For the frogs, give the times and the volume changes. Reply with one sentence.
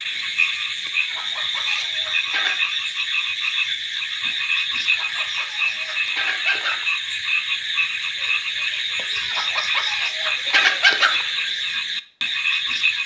You can hear the frogs from 0.0 to 13.0 s, at a steady volume.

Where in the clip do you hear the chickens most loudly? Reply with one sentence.
The volume of the chickens peaks at 11 seconds.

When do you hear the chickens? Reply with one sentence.
The chickens can be heard from 1.0 to 2.5 s, from 4.8 to 6.8 s and from 9.2 to 11.2 s.